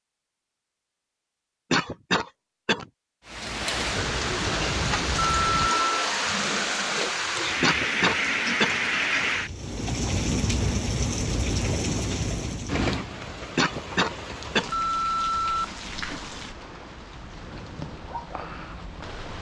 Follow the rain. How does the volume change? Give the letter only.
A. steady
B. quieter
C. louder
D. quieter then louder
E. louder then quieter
B.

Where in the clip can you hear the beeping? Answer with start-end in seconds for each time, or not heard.
5.2-5.9, 14.7-16.2.